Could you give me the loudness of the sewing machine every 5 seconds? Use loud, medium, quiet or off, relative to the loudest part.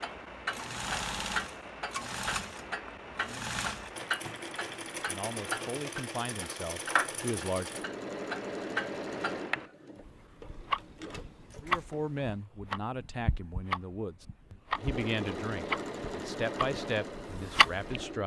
loud, loud, medium, loud.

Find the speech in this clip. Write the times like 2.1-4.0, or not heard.
5.0-7.7, 11.6-18.2.